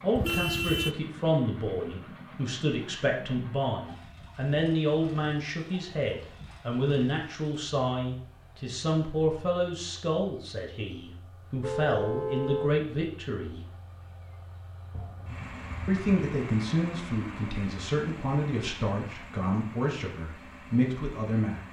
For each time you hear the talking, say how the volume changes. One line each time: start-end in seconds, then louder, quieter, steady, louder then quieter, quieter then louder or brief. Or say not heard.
0.0-13.7 steady
15.8-21.6 steady.